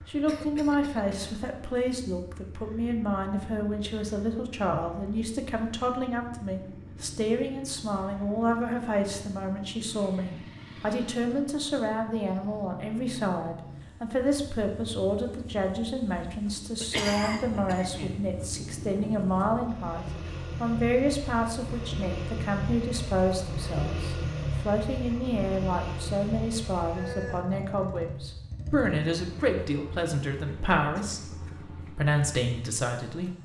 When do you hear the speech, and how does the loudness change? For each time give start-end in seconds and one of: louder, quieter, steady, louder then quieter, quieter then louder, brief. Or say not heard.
0.1-33.3 steady.